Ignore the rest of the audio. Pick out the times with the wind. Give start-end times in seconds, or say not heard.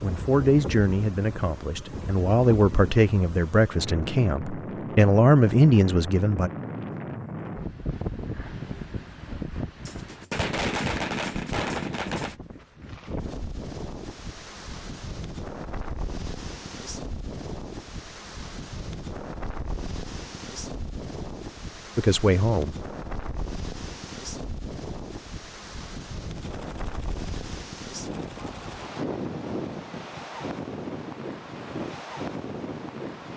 0.0-33.3.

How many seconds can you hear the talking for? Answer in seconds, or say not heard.
7 s.